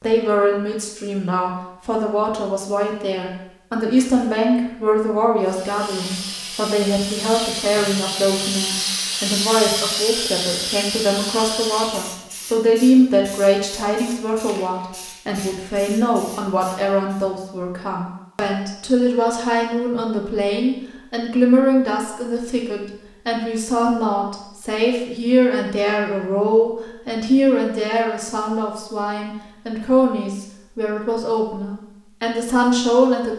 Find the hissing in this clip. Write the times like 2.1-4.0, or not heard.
5.4-17.3.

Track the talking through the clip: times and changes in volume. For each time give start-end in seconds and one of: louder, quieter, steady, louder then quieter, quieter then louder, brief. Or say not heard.
0.0-33.3 steady.